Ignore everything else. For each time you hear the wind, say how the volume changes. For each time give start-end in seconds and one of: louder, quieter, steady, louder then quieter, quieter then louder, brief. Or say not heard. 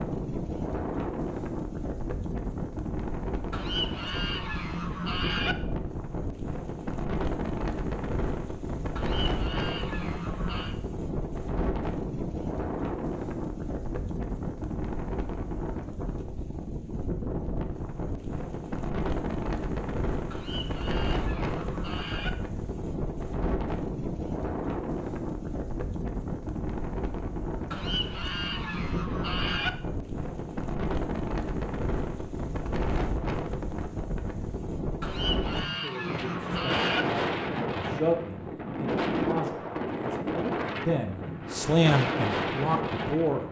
0.0-43.4 steady.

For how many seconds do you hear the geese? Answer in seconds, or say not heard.
10 s.